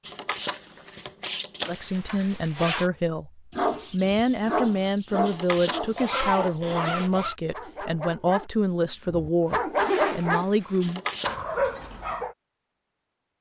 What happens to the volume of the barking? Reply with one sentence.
The volume of the barking goes down, then up.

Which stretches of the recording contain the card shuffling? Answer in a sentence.
The card shuffling can be heard from 0.1 to 2.0 s, from 5.2 to 6.2 s and from 10.8 to 11.4 s.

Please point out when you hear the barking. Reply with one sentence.
The barking can be heard from 3.5 to 12.3 s.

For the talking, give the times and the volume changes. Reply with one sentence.
You can hear the talking from 1.6 to 11.0 s, at a steady volume.